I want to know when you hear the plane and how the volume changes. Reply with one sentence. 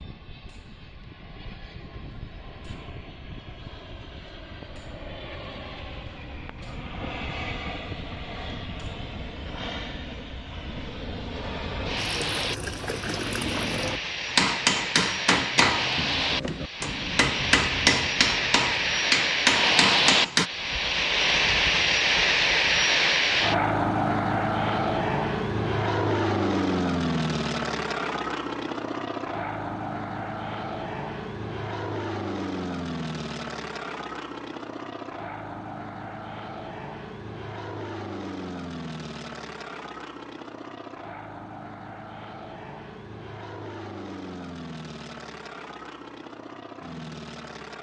You can hear the plane from 0.0 to 47.7 s, getting louder then quieter.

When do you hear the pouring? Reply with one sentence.
The pouring can be heard from 11.9 to 14.0 s.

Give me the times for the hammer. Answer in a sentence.
The hammer can be heard from 14.2 to 20.5 s.